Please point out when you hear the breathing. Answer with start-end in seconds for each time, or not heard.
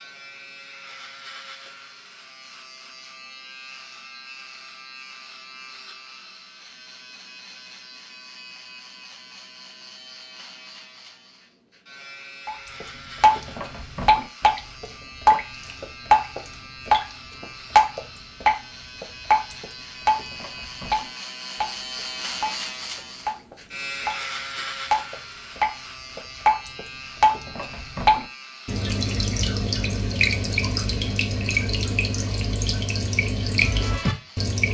not heard.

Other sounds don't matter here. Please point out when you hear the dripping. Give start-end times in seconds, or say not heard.
12.4-17.1, 17.8-24.2, 24.9-34.6.